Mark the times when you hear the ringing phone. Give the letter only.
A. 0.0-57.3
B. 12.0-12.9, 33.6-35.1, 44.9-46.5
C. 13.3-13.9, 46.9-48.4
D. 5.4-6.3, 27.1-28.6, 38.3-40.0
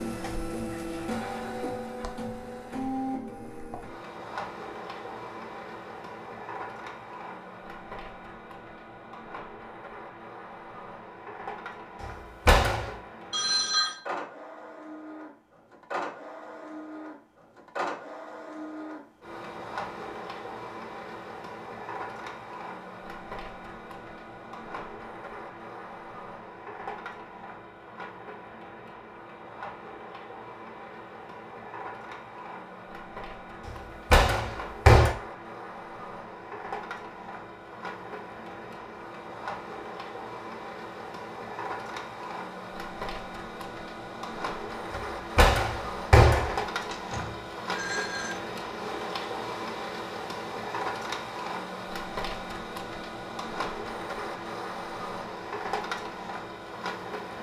C.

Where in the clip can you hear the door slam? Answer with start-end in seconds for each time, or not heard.
12.0-12.9, 33.6-35.1, 44.9-46.5.